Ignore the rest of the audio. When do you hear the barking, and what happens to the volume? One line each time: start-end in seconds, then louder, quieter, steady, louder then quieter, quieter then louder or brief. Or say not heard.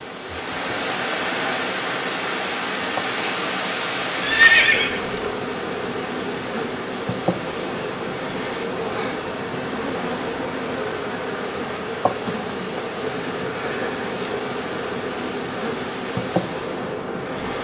not heard.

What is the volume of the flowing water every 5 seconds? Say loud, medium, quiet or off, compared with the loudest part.
loud, medium, medium, medium.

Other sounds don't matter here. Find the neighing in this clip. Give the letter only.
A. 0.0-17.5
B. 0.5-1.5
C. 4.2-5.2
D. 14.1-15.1
C.